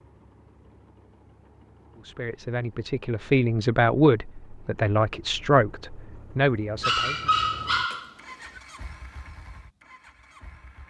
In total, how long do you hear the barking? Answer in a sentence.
The barking can be heard for 2 seconds in total.